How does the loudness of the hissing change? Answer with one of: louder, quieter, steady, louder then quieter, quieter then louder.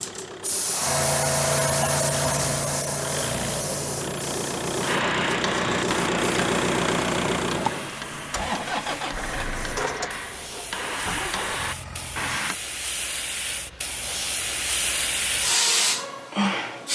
quieter then louder.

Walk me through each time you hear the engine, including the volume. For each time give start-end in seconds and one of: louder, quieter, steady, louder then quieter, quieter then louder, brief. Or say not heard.
0.0-12.4 louder then quieter.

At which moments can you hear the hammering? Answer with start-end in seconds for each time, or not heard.
4.8-12.6.